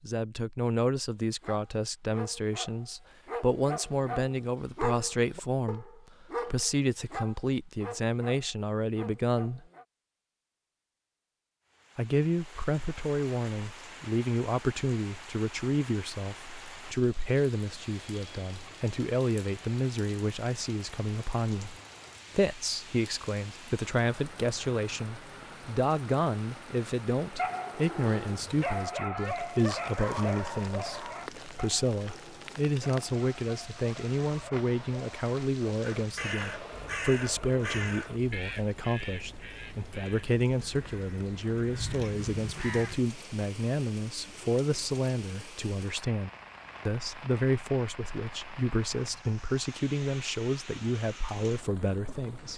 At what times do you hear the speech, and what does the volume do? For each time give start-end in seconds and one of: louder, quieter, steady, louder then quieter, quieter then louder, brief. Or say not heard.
0.0-9.7 steady
11.9-52.5 steady.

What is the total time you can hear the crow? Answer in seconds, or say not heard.
7 s.